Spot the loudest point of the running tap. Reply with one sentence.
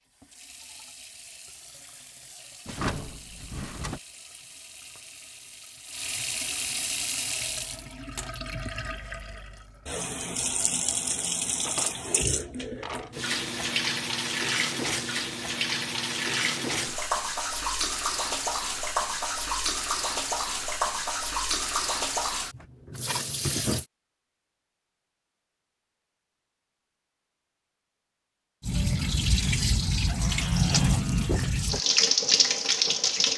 The loudest moment of the running tap is at 32 seconds.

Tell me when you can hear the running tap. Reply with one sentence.
The running tap can be heard from 0.1 to 23.9 s and from 28.6 to 33.3 s.